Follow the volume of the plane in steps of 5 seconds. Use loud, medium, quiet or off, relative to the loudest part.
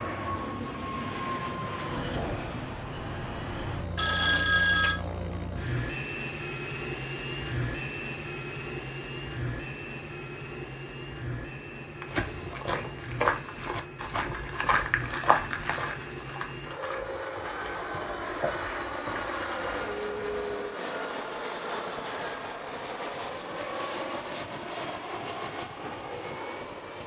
loud, loud, medium, loud, loud, loud.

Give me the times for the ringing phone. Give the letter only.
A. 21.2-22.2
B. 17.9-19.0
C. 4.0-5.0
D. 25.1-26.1
C.